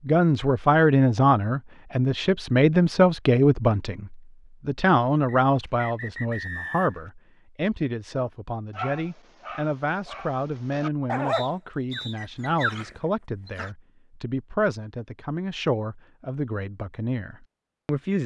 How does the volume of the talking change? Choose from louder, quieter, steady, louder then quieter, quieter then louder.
quieter.